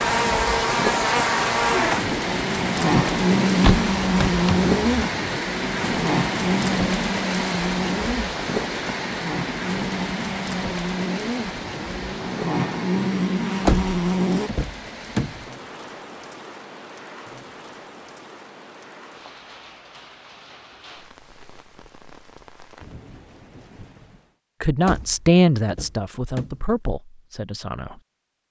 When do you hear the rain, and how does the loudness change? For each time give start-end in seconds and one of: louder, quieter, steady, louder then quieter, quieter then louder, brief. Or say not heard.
0.0-24.4 quieter.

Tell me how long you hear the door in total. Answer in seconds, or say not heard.
5 s.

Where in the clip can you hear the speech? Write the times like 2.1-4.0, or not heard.
24.6-28.0.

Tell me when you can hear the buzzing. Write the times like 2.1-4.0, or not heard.
0.0-14.5.